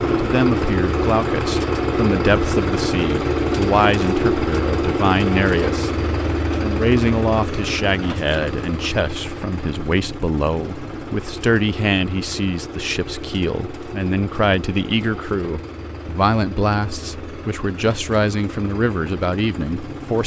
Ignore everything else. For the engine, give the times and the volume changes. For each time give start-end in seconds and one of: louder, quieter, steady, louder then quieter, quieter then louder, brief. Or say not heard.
0.0-20.2 quieter.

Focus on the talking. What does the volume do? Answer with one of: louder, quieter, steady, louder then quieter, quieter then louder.
steady.